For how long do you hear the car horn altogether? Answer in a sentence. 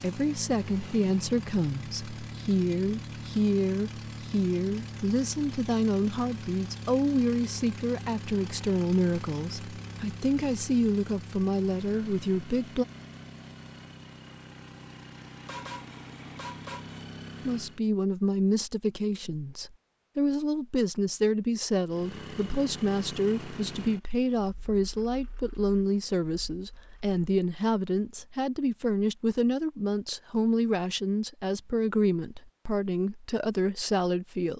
You can hear the car horn for 2 seconds altogether.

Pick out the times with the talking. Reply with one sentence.
The talking can be heard from 0.0 to 12.8 s and from 17.4 to 34.5 s.